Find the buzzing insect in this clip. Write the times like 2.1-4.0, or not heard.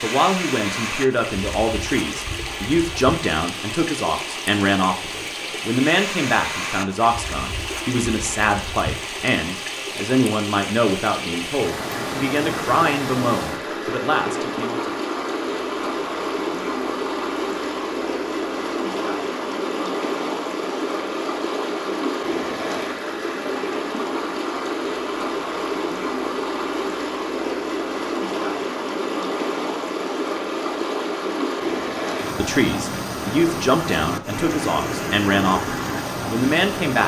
not heard.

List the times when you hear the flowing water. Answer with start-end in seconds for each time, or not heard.
0.0-37.0.